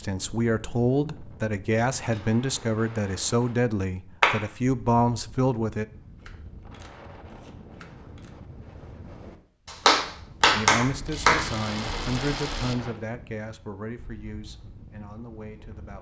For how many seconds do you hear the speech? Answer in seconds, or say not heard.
11 s.